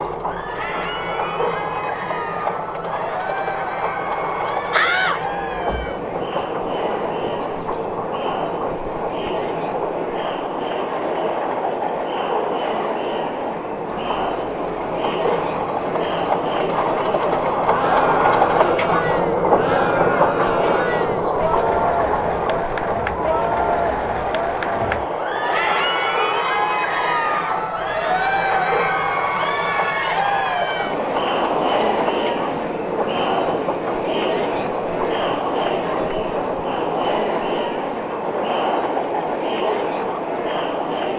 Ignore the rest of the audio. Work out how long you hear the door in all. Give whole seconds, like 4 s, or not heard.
2 s.